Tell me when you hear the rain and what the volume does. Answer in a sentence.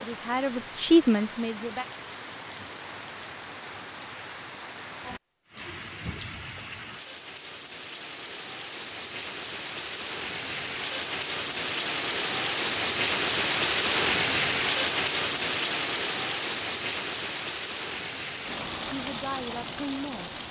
You can hear the rain from 0.0 to 20.4 s, getting louder then quieter.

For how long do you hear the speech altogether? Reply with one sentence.
You can hear the speech for 3 seconds altogether.